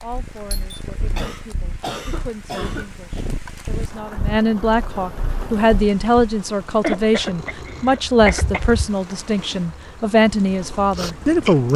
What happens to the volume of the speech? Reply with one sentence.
The loudness of the speech goes up.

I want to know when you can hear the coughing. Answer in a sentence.
You can hear the coughing from 1.1 to 3.2 s and from 6.7 to 8.7 s.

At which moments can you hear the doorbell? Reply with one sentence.
You can hear the doorbell from 0.5 to 0.9 s.